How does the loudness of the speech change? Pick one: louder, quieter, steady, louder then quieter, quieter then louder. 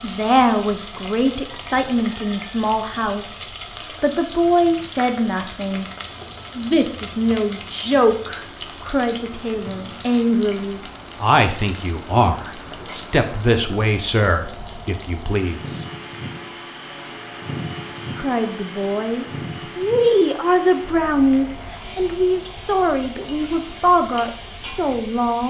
steady.